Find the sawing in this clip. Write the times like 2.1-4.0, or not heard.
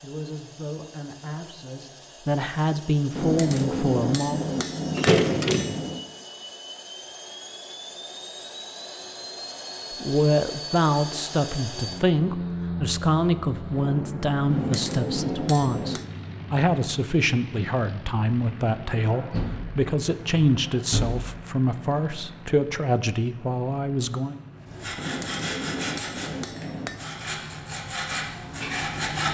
24.6-29.2.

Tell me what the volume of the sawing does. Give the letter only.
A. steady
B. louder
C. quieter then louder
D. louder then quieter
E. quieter
C.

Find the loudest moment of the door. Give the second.
5 s.